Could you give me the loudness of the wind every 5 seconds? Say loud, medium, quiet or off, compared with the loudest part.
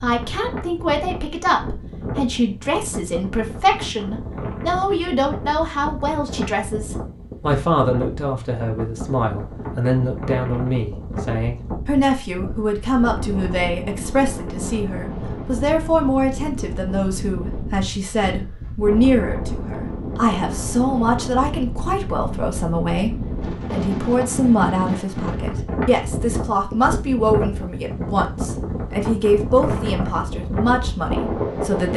medium, medium, medium, medium, loud, loud, loud.